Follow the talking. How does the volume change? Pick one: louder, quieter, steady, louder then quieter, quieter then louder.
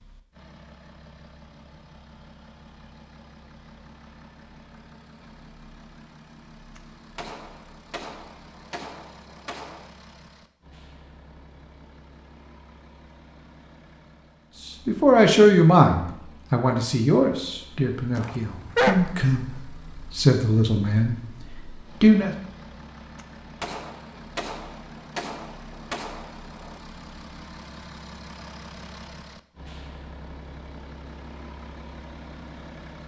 quieter.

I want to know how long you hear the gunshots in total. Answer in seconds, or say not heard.
7 s.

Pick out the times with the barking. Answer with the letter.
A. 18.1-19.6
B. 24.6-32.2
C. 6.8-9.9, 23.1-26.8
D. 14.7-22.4
A.